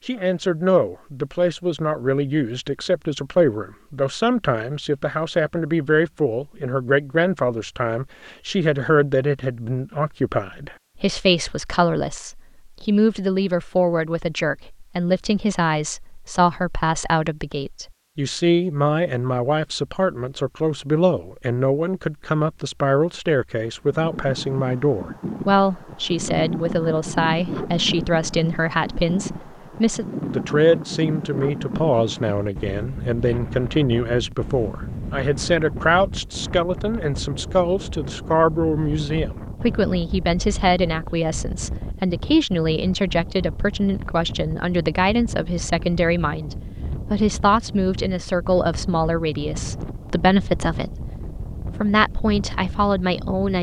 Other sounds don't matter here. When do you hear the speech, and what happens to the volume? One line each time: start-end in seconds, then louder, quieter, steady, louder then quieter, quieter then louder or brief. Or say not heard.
0.1-53.5 steady.